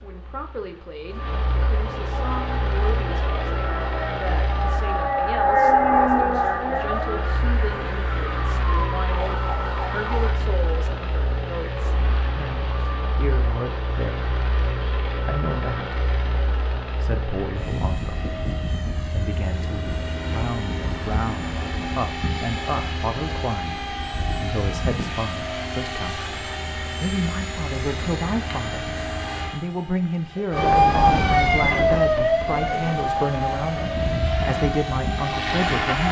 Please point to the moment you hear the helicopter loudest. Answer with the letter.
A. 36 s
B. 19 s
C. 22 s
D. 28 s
A.